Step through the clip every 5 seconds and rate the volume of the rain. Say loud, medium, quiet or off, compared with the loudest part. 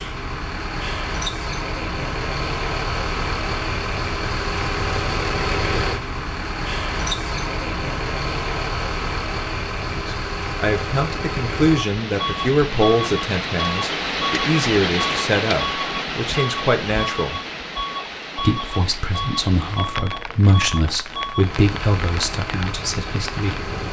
off, off, loud, loud, medium.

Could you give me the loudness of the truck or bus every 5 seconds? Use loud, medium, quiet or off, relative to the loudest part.
loud, loud, loud, loud, medium.